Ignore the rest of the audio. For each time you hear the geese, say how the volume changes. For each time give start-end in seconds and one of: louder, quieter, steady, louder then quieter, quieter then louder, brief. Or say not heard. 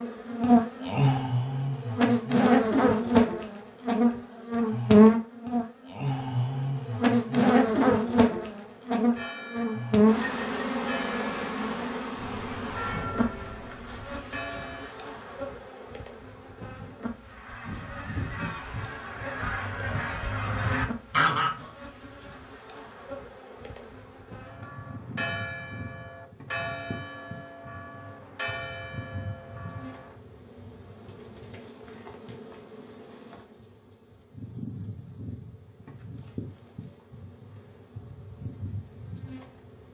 17.2-21.7 louder.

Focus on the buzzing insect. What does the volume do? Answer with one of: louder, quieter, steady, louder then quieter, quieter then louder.
quieter.